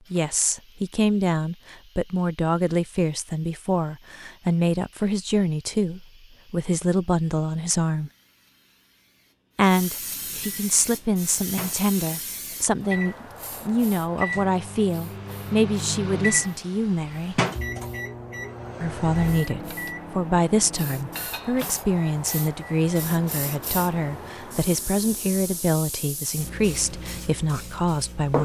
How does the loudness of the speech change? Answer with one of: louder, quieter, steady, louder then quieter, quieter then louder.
steady.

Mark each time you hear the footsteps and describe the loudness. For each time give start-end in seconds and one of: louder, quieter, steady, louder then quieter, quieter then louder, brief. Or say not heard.
not heard.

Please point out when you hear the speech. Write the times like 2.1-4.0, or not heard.
0.1-8.1, 9.6-17.4, 18.8-28.4.